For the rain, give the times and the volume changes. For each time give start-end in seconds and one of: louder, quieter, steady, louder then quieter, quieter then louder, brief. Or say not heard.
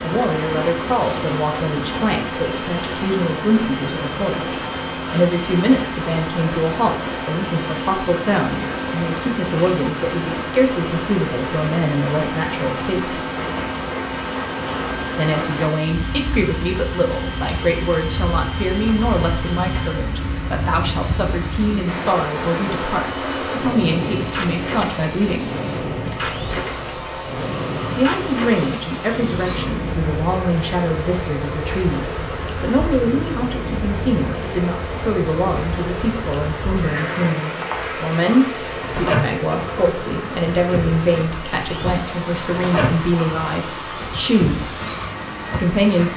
0.0-46.1 steady.